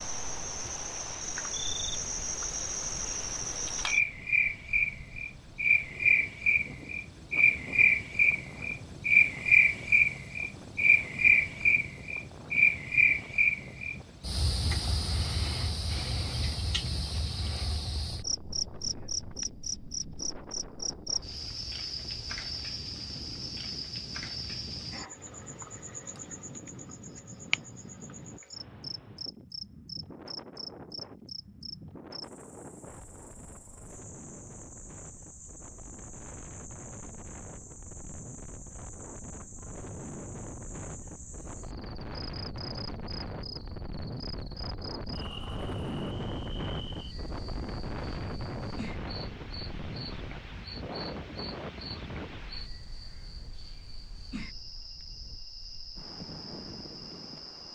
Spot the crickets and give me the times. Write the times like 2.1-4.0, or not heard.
0.0-57.7.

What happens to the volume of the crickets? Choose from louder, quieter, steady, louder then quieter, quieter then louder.
quieter.